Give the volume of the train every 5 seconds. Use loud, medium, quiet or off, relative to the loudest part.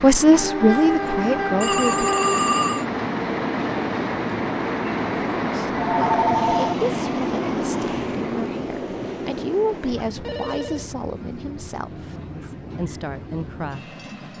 loud, loud, quiet.